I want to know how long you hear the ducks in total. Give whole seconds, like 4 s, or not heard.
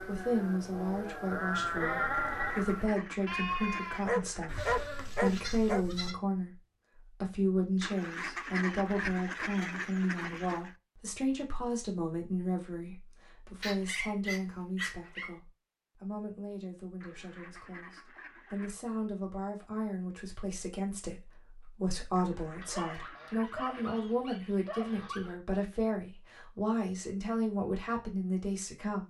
9 s.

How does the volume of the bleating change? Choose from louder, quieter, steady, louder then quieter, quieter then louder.
louder then quieter.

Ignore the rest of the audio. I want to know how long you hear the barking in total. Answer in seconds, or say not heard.
6 s.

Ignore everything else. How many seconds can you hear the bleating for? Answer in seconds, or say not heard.
6 s.